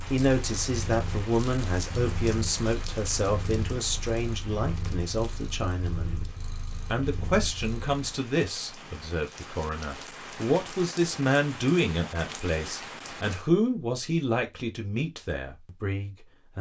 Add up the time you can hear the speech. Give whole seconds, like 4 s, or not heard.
16 s.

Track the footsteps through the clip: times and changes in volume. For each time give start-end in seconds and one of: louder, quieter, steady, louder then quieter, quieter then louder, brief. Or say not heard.
not heard.